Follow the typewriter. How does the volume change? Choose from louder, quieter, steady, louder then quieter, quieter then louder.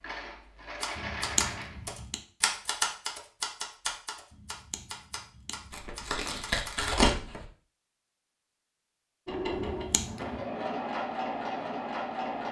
louder then quieter.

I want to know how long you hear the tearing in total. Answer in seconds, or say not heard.
2 s.